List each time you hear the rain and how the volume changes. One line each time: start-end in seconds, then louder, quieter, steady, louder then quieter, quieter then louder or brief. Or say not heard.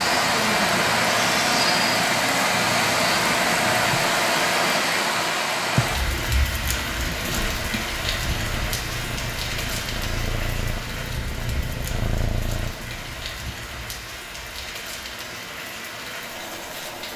0.0-17.1 quieter.